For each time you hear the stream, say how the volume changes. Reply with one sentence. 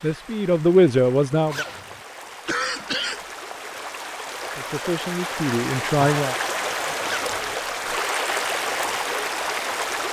You can hear the stream from 0.0 to 10.0 s, getting louder.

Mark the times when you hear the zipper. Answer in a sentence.
You can hear the zipper from 1.4 to 2.0 s and from 7.0 to 7.5 s.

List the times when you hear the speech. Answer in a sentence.
The speech can be heard from 0.0 to 1.6 s and from 4.5 to 6.3 s.